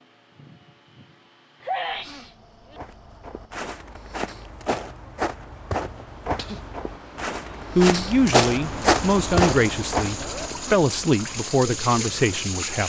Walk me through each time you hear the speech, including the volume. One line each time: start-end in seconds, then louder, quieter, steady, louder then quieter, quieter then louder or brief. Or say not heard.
7.8-12.8 quieter then louder.